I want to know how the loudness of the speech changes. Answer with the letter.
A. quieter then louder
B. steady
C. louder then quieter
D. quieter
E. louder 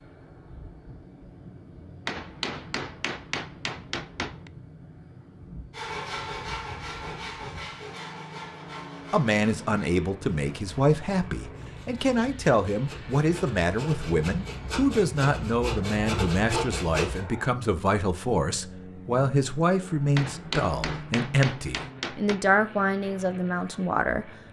B.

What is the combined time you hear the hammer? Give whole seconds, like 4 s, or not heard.
5 s.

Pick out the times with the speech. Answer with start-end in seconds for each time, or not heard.
9.1-24.4.